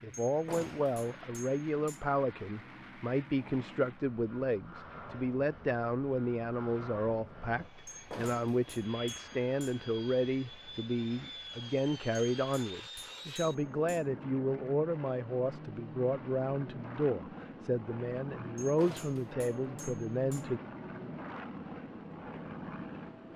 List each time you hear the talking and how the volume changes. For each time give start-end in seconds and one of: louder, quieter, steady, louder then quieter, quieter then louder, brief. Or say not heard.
0.0-20.6 steady.